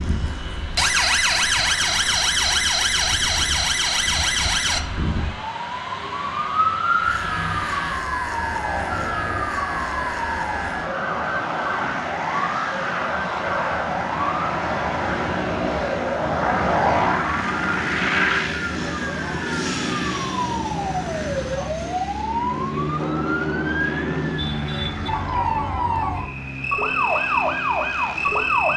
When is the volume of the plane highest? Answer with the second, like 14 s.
17 s.